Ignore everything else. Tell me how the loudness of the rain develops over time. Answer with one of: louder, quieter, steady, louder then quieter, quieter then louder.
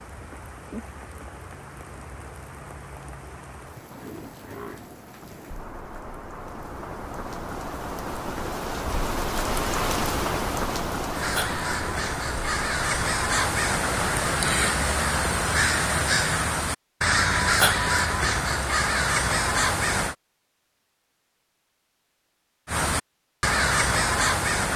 louder.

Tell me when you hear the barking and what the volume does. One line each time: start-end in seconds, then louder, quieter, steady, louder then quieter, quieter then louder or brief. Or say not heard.
not heard.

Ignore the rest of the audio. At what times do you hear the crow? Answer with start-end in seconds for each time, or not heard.
11.1-20.1, 22.6-24.7.